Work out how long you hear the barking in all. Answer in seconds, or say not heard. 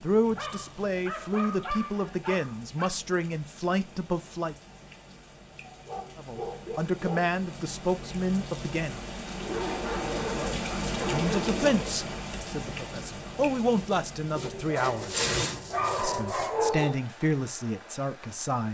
9 s.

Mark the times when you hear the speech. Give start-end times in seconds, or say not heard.
0.0-4.5, 6.2-9.0, 10.7-15.2, 15.9-18.6.